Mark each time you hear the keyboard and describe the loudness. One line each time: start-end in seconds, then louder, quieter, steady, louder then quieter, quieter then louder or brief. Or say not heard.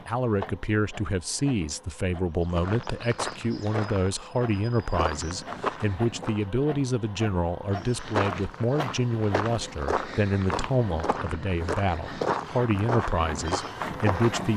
not heard.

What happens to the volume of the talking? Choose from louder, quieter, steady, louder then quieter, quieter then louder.
steady.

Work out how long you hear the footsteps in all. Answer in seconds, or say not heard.
11 s.